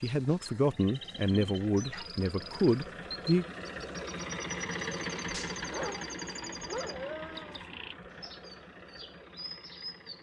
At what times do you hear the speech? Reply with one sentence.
The speech can be heard from 0.0 to 3.5 s.